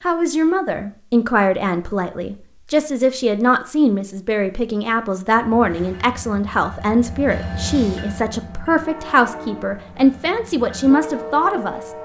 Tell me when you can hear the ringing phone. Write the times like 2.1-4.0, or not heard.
not heard.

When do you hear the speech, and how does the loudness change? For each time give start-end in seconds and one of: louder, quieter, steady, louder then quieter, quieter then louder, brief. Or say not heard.
0.0-11.9 steady.